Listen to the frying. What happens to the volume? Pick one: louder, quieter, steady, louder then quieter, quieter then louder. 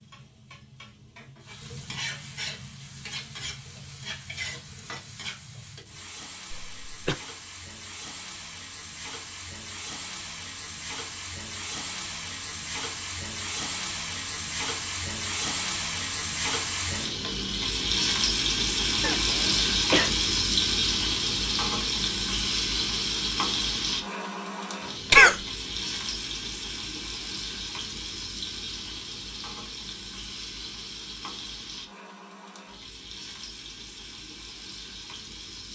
louder then quieter.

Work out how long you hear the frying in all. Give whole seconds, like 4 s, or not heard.
36 s.